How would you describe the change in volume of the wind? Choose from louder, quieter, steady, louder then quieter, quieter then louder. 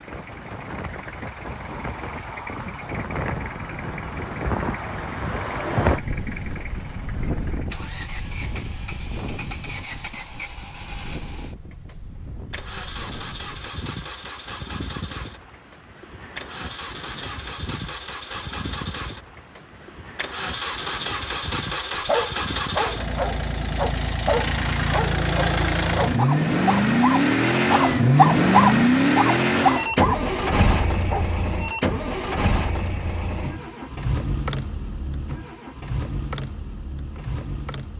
quieter.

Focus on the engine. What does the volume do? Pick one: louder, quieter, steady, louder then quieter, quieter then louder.
louder then quieter.